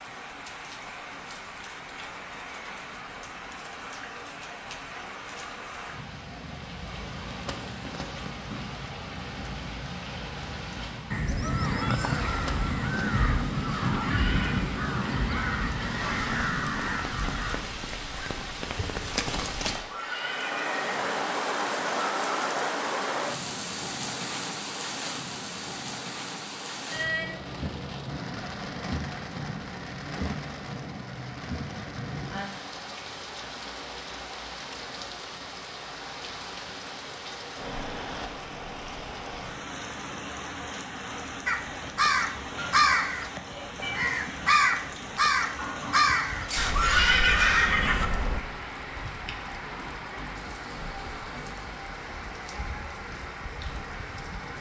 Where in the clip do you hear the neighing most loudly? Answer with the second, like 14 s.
47 s.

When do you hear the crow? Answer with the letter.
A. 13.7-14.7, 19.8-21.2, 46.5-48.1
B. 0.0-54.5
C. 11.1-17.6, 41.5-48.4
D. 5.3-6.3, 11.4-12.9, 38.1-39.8
C.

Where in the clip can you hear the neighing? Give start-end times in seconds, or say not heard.
13.7-14.7, 19.8-21.2, 46.5-48.1.